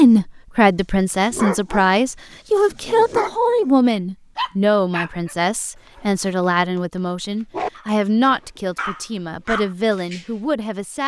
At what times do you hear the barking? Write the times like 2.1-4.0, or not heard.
1.2-1.9, 2.5-3.8, 4.3-10.3.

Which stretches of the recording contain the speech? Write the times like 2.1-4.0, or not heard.
0.0-11.0.